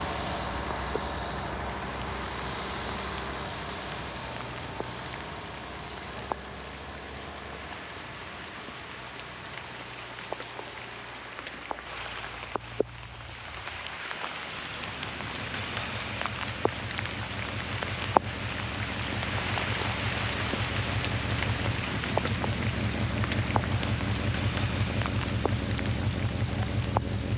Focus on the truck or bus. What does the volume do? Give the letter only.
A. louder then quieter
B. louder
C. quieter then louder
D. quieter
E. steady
C.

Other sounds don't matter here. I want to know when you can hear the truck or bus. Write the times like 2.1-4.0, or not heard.
0.0-27.3.